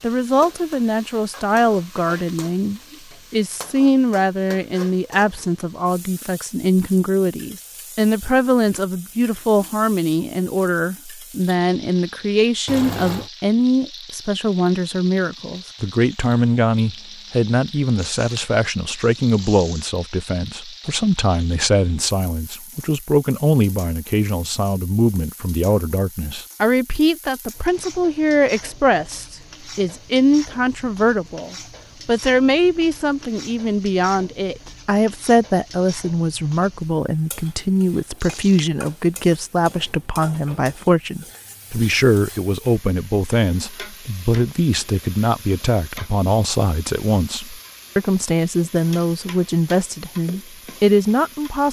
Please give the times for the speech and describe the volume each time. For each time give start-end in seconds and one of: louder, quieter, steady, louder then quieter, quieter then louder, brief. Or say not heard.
0.0-51.6 steady.